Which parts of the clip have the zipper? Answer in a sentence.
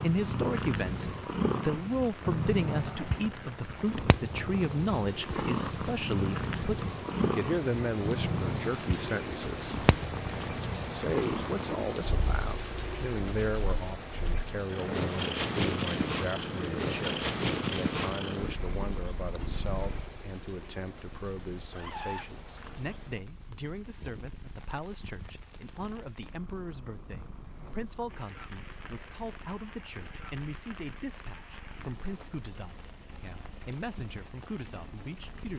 The zipper can be heard from 21.7 to 22.8 s.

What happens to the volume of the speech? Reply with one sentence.
The loudness of the speech goes down.